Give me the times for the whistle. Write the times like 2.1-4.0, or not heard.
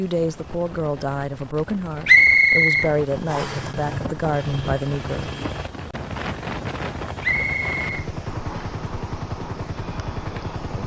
2.0-3.6, 7.2-8.8.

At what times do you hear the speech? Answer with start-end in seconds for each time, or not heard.
0.0-5.3.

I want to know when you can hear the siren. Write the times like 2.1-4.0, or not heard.
not heard.